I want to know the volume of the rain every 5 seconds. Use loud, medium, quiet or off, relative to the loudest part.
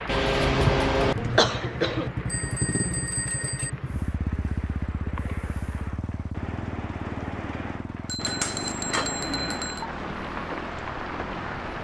medium, loud, loud.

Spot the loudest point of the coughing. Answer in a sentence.
The loudest moment of the coughing is at 1 second.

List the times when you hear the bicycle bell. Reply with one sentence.
The bicycle bell can be heard from 2.2 to 3.7 s and from 8.1 to 9.8 s.